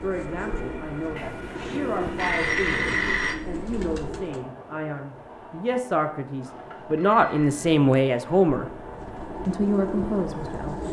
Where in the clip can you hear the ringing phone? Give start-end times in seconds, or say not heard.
1.1-3.4, 6.4-7.7.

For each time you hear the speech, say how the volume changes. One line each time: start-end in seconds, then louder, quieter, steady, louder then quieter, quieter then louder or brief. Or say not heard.
0.0-8.7 louder
9.4-10.8 brief.